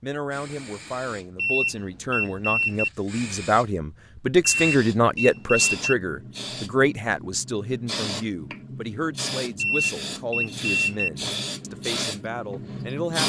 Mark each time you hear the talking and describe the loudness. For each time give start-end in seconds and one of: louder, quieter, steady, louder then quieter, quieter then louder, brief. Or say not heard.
0.0-13.2 louder then quieter.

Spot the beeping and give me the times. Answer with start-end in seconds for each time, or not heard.
1.4-2.9, 4.4-5.9, 9.6-11.1.